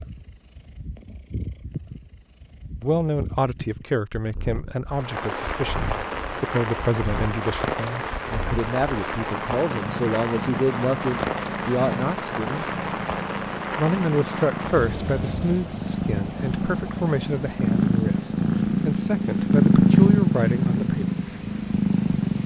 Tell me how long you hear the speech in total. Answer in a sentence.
You can hear the speech for 17 seconds altogether.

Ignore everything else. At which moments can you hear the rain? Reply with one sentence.
You can hear the rain from 4.9 to 22.4 s.